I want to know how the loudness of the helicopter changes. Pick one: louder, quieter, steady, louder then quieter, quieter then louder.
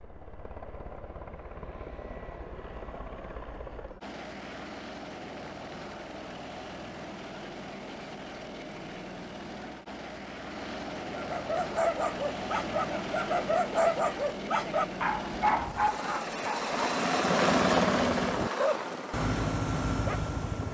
louder.